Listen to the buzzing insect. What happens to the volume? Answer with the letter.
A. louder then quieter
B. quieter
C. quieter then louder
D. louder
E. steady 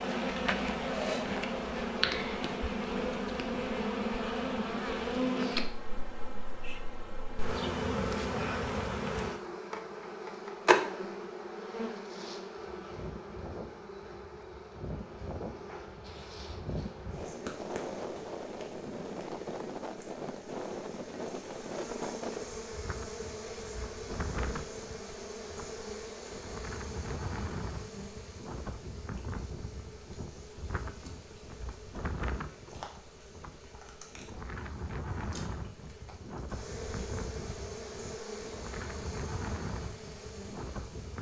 B.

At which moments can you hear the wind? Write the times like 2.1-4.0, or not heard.
12.6-41.1.